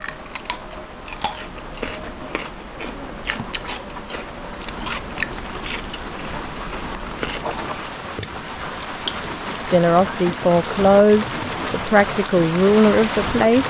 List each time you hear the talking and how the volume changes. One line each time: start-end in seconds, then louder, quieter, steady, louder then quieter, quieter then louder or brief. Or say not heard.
9.6-13.6 quieter then louder.